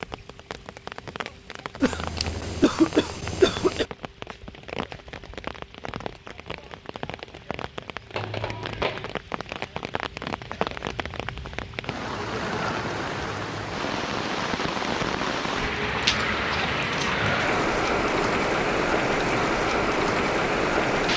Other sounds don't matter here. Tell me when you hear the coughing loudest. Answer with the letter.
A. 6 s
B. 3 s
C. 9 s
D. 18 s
B.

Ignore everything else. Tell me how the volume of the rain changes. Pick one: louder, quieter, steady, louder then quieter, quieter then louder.
louder.